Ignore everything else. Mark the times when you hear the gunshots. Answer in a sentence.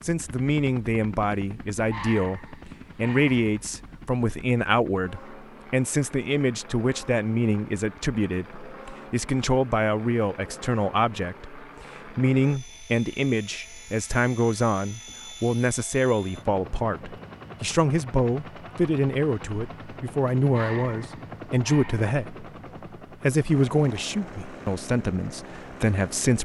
You can't hear the gunshots here.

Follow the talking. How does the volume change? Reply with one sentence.
The volume of the talking stays about the same.